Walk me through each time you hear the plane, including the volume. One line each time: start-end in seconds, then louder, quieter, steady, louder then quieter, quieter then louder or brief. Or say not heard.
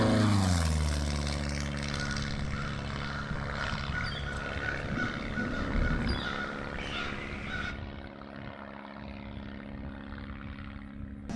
0.0-11.3 quieter.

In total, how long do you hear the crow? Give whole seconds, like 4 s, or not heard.
6 s.